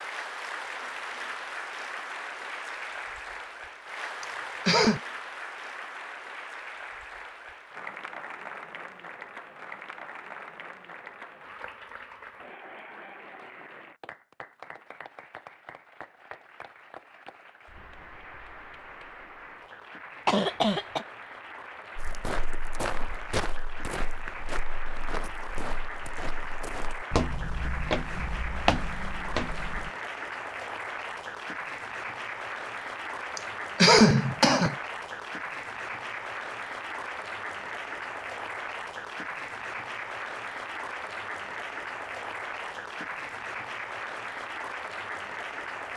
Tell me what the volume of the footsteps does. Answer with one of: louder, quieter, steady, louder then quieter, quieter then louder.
quieter then louder.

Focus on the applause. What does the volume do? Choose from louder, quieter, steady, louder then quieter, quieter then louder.
quieter then louder.